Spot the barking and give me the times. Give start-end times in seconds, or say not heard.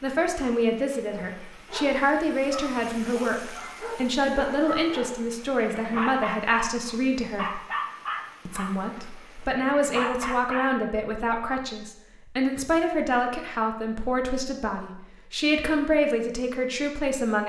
1.1-10.7.